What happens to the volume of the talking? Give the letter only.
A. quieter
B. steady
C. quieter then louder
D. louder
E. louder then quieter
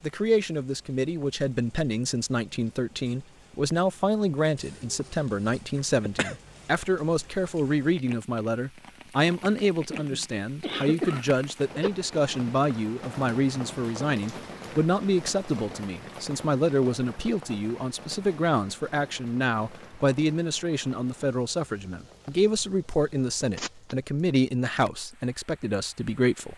B.